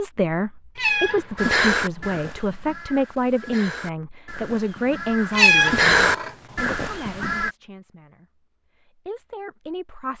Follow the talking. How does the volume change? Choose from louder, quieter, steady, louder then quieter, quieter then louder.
quieter.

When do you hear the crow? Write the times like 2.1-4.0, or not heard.
1.4-7.5.